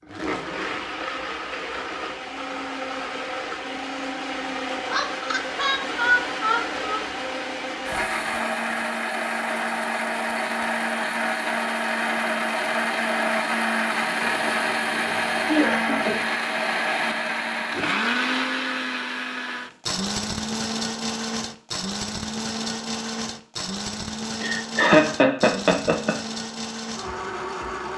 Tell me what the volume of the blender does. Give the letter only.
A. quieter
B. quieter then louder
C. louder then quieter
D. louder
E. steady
C.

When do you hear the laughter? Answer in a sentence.
The laughter can be heard from 4.9 to 7.0 s, from 14.2 to 16.2 s and from 24.4 to 26.1 s.